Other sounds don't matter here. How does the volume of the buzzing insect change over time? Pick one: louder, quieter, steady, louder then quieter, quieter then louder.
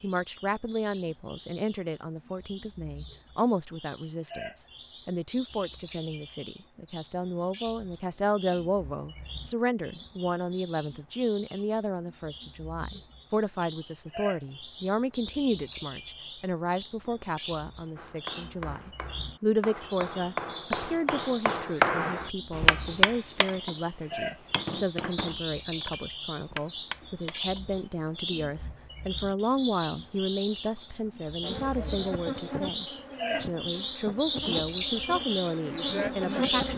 quieter then louder.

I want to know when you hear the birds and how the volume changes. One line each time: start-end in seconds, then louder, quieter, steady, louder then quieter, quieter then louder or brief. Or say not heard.
0.0-36.7 louder.